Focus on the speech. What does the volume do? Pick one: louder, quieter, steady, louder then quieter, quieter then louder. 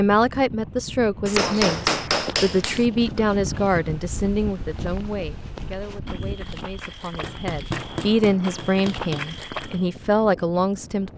quieter then louder.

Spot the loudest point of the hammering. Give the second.
2 s.